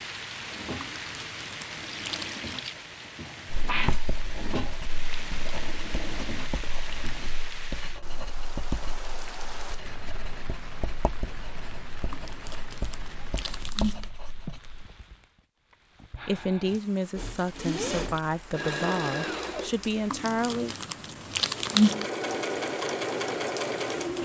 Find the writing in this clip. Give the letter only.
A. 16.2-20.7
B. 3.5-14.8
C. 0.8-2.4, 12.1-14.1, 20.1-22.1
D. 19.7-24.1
B.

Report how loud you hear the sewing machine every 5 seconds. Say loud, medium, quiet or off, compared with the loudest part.
medium, medium, off, loud, loud.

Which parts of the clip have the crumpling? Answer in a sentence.
You can hear the crumpling from 0.8 to 2.4 s, from 12.1 to 14.1 s and from 20.1 to 22.1 s.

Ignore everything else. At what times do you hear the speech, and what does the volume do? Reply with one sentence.
You can hear the speech from 16.2 to 20.7 s, at a steady volume.